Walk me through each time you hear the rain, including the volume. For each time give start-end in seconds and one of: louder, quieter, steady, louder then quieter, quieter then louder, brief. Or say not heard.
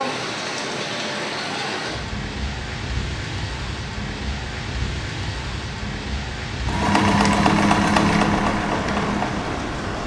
0.0-10.0 steady.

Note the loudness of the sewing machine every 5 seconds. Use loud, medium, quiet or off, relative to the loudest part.
off, loud.